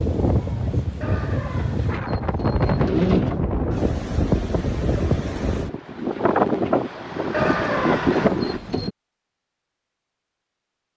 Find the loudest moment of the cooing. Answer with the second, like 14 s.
3 s.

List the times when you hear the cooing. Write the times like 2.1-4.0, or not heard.
1.0-3.4, 7.3-8.9.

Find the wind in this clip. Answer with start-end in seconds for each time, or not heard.
0.0-8.6.